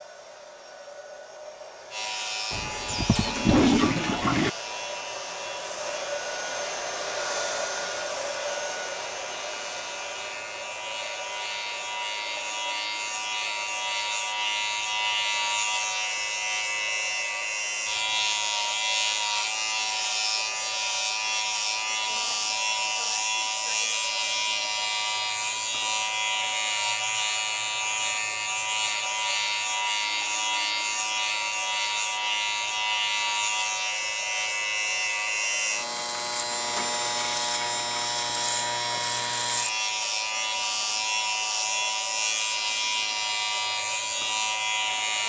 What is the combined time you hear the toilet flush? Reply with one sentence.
You can hear the toilet flush for 2 seconds altogether.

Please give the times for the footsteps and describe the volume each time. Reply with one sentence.
The footsteps can't be heard in this clip.